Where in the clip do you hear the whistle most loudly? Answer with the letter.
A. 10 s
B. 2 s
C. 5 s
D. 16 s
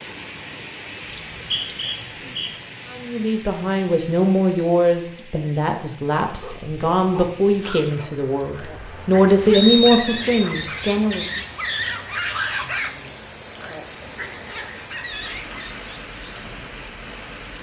A.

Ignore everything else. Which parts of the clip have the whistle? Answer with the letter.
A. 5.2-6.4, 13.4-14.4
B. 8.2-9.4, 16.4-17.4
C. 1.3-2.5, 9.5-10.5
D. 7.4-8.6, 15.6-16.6
C.